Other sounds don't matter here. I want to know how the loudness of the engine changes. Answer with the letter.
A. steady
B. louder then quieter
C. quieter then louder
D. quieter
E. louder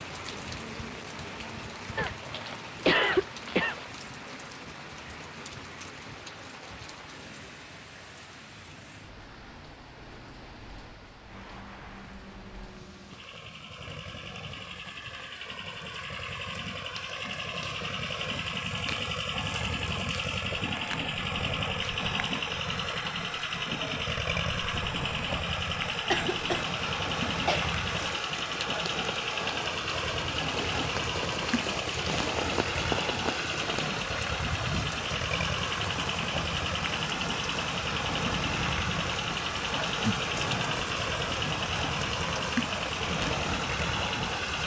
E.